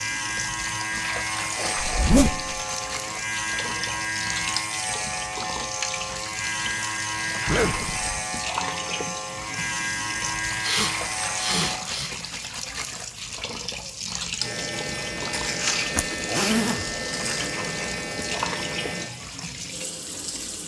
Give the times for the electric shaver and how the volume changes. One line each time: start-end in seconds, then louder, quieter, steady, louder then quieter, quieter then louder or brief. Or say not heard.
0.0-11.8 steady
14.3-19.1 steady.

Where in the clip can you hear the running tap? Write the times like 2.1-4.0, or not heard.
0.0-20.6.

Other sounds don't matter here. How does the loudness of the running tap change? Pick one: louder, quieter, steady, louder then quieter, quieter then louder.
steady.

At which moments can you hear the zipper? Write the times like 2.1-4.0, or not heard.
1.8-2.6, 7.5-8.2, 15.9-16.9.